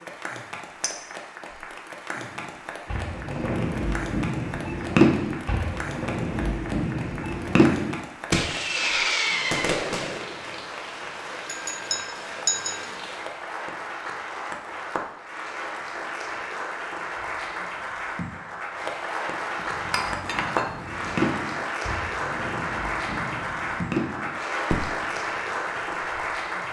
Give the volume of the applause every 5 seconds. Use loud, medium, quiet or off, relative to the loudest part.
medium, medium, medium, loud, loud, loud.